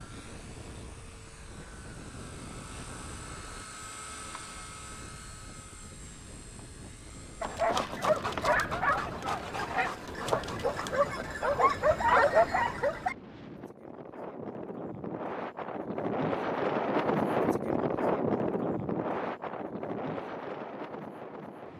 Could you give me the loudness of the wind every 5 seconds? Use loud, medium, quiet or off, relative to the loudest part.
quiet, quiet, quiet, loud, medium.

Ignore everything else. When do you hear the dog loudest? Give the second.
12 s.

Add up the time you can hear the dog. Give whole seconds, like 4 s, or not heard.
6 s.